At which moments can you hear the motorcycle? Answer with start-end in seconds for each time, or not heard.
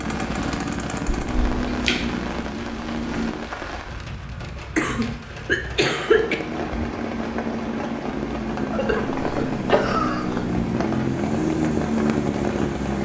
0.0-3.5, 6.0-12.9.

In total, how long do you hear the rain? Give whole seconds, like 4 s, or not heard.
13 s.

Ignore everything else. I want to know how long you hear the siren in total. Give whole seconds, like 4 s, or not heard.
not heard.